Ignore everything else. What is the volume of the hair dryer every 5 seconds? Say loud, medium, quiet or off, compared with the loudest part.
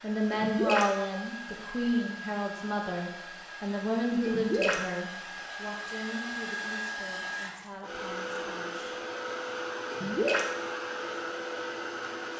medium, loud, loud.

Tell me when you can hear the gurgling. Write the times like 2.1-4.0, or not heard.
0.3-0.9, 4.2-4.8, 9.9-10.4.